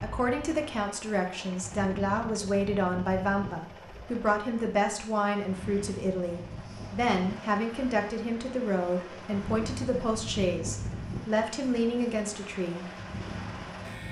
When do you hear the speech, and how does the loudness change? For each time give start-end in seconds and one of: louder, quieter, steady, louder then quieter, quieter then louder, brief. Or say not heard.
0.0-12.9 steady.